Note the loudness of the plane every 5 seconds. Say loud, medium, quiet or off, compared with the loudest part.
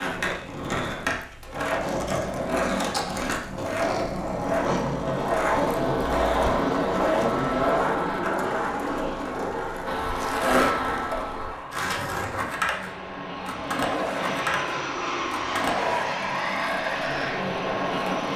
off, medium, loud, loud.